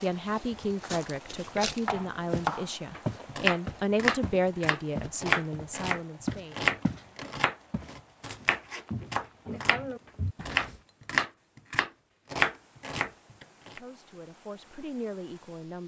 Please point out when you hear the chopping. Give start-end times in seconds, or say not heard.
1.6-13.8.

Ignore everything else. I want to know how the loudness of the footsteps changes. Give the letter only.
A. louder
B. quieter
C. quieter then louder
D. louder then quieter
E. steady
D.